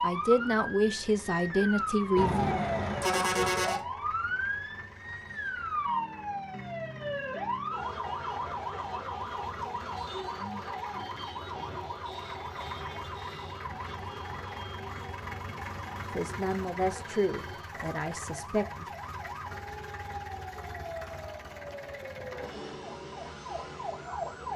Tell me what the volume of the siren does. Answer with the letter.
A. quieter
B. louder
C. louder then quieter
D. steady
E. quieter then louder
A.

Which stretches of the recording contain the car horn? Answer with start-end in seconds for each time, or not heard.
2.1-3.8.